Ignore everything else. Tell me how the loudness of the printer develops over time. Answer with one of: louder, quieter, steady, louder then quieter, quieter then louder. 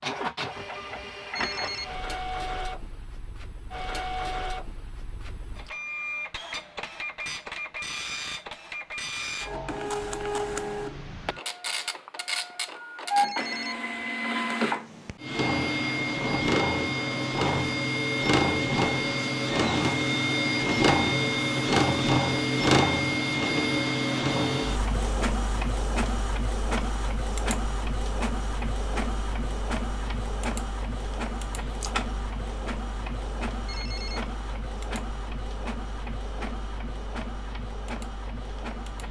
louder then quieter.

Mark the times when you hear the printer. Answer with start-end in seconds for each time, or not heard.
0.0-39.0.